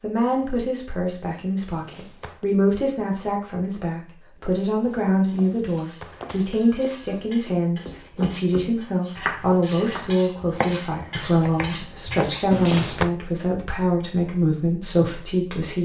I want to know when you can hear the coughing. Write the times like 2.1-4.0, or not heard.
not heard.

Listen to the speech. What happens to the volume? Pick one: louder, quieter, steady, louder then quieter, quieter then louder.
steady.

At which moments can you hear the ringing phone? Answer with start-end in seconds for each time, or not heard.
1.7-2.5, 5.5-7.3, 12.5-13.1.